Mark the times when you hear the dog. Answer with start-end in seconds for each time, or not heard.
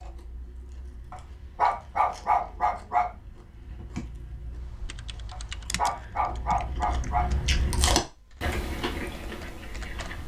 1.1-3.1, 5.3-7.3.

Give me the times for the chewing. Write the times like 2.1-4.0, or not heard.
0.0-10.2.